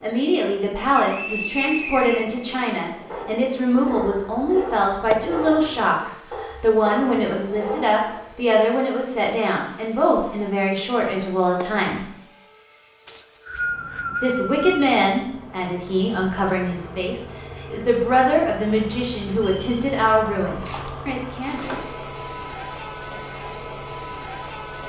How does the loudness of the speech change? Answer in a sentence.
The volume of the speech stays about the same.